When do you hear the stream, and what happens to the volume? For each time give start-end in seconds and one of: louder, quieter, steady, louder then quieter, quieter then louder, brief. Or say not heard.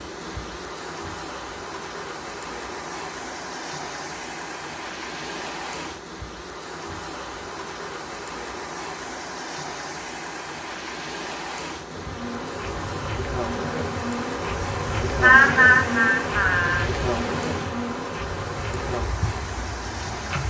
0.0-20.4 steady.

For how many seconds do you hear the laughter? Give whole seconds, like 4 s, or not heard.
2 s.